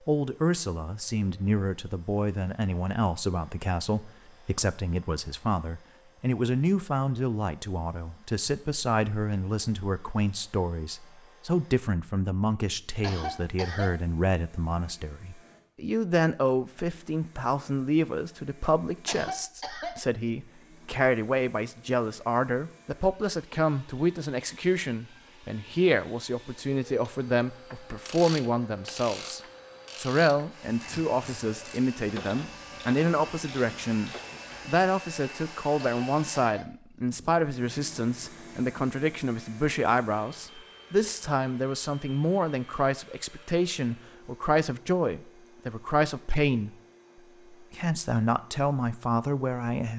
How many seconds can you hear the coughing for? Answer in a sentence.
You can hear the coughing for 3 seconds altogether.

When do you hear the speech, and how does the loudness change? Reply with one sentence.
You can hear the speech from 0.1 to 46.8 s, at a steady volume; and briefly from 47.5 to 49.9 s.